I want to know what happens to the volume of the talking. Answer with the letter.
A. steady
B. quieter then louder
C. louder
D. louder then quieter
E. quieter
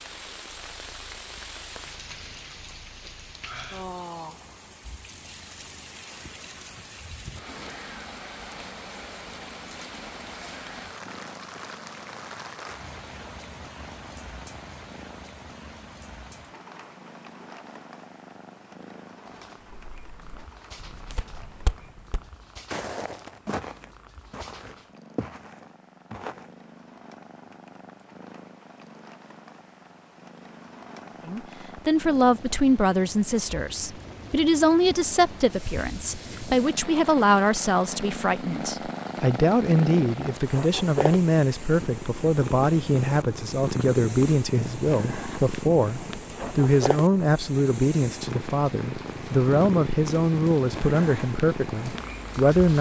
A.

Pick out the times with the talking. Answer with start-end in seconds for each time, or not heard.
31.2-52.7.